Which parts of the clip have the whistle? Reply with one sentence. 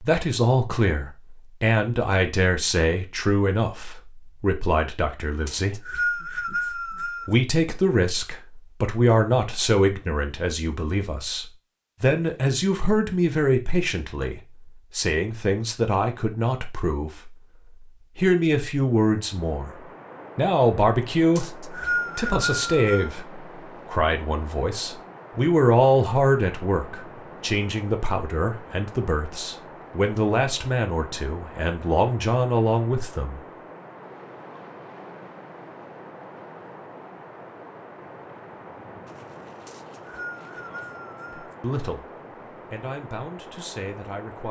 The whistle can be heard from 5.5 to 7.3 s, from 21.4 to 23.1 s and from 39.6 to 41.5 s.